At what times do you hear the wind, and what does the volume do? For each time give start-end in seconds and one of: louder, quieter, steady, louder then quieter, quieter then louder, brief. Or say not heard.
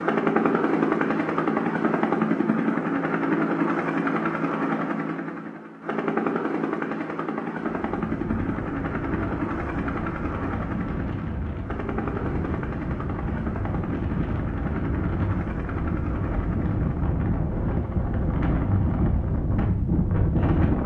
7.8-20.8 louder.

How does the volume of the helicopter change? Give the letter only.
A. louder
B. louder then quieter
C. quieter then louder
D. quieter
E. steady
D.